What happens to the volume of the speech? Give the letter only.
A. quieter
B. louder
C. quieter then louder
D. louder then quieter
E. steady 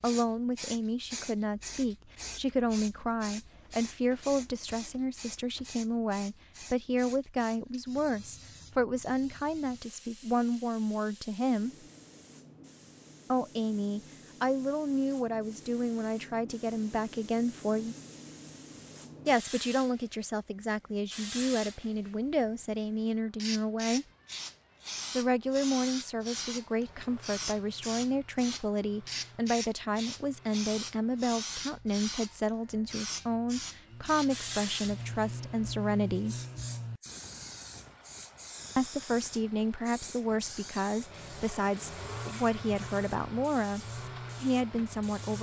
E.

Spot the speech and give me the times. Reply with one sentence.
The speech can be heard from 0.0 to 11.7 s, from 13.3 to 17.9 s, from 19.2 to 24.1 s, from 25.1 to 36.4 s and from 38.8 to 45.3 s.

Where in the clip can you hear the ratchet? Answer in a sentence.
You can't hear the ratchet here.